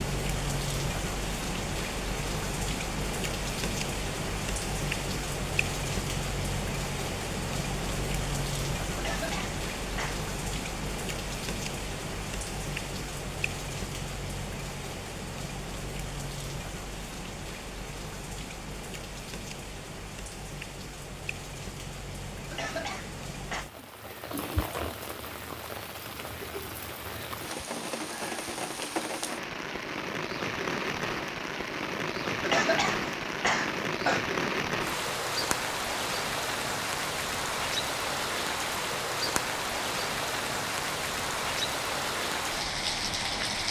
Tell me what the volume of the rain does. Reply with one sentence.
The loudness of the rain goes down, then up.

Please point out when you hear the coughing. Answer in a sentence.
You can hear the coughing from 8.9 to 10.2 s, from 22.5 to 23.6 s and from 32.4 to 34.2 s.